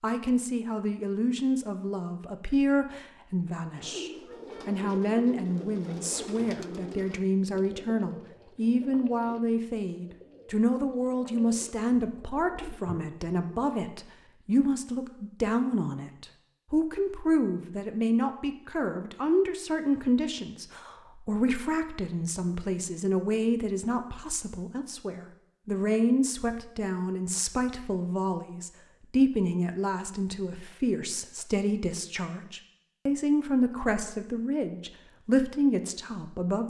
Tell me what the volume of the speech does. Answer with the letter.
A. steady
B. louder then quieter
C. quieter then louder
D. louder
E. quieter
A.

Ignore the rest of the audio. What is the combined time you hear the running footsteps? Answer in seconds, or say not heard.
not heard.